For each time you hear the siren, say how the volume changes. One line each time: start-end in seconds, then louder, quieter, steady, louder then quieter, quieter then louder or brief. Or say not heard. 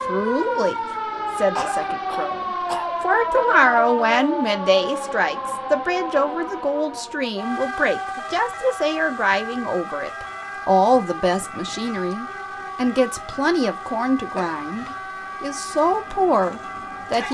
0.0-17.2 quieter.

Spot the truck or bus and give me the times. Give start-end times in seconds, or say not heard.
not heard.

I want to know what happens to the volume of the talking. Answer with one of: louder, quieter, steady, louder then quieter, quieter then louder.
steady.